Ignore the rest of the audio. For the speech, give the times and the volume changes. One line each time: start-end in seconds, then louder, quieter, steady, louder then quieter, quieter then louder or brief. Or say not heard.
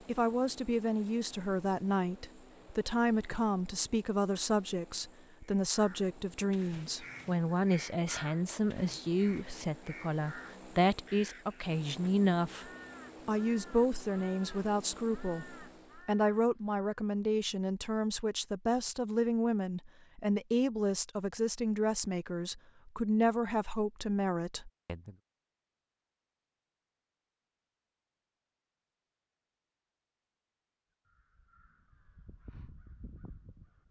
0.1-12.7 steady
13.2-25.1 steady.